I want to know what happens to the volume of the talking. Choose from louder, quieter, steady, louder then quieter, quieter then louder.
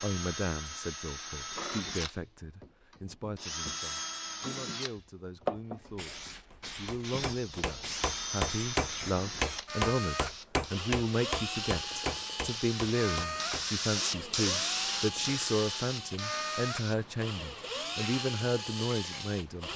louder.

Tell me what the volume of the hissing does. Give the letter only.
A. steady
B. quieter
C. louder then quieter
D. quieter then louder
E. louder
C.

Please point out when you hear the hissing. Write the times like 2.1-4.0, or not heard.
5.5-19.7.